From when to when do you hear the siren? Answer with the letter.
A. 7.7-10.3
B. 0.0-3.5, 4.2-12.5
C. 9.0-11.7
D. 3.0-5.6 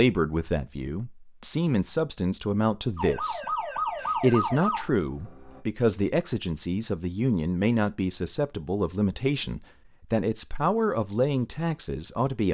D.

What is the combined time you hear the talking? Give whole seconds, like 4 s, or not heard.
12 s.